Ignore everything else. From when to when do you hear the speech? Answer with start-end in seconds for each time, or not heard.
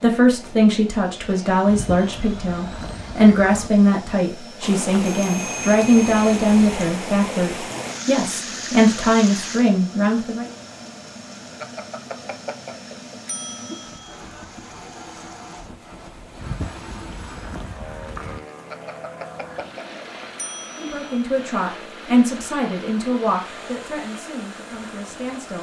0.0-10.5, 20.8-25.5.